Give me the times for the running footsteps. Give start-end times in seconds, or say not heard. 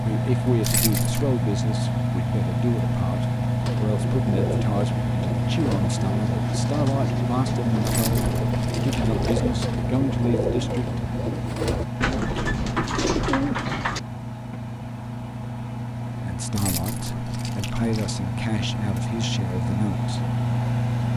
not heard.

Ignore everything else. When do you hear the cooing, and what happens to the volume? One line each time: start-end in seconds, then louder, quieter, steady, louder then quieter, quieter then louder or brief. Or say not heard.
3.6-14.0 louder.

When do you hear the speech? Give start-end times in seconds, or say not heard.
0.0-11.0, 16.1-20.4.